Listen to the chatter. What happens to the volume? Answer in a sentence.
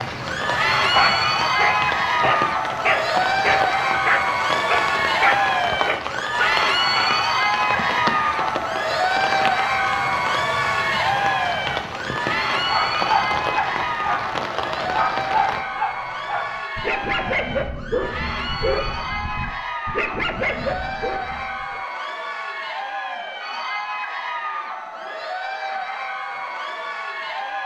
The loudness of the chatter goes down.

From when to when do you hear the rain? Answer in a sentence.
The rain can be heard from 0.0 to 15.6 s.